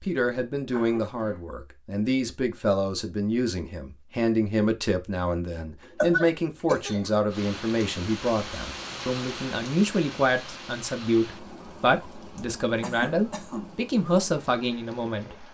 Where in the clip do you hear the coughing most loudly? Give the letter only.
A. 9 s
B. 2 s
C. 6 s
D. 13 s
C.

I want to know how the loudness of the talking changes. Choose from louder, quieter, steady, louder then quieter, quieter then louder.
steady.